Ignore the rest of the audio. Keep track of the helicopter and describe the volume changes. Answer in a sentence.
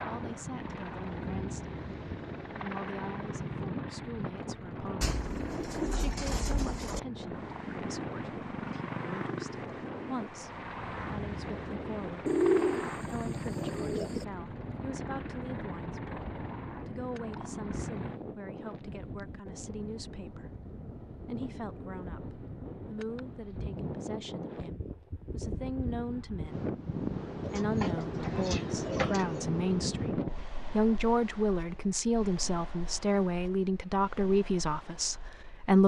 The volume of the helicopter stays about the same.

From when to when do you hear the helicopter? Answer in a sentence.
You can hear the helicopter from 0.0 to 18.2 s.